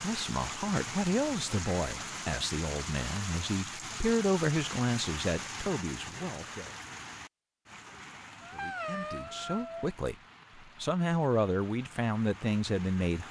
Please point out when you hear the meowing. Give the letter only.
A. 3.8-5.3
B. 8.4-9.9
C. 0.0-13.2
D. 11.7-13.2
B.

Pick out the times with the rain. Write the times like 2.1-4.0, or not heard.
0.0-13.2.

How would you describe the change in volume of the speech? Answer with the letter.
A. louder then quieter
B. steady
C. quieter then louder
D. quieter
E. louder
B.